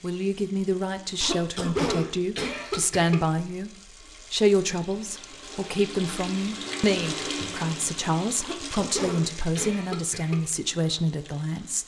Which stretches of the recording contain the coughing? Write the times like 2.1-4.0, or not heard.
1.2-3.2, 8.4-10.4.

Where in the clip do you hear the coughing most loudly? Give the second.
2 s.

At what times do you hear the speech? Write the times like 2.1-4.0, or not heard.
0.0-3.7, 4.3-11.8.